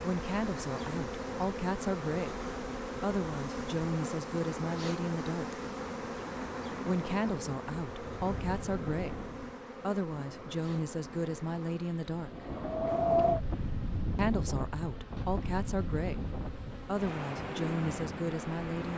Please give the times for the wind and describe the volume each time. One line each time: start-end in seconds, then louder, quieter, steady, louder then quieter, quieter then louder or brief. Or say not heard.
0.0-18.9 louder then quieter.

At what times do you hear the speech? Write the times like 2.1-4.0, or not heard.
0.0-5.7, 6.8-12.5, 14.2-18.9.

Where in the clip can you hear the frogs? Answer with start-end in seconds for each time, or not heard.
not heard.